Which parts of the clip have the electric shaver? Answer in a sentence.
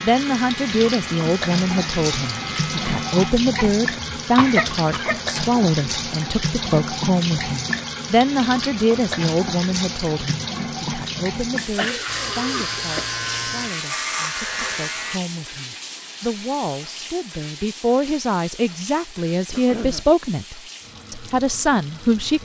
The electric shaver can be heard from 0.0 to 3.4 s and from 12.1 to 15.2 s.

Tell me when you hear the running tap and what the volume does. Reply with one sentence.
The running tap can be heard from 0.0 to 22.4 s, getting quieter.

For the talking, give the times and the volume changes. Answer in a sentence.
You can hear the talking from 0.0 to 22.4 s, getting quieter then louder.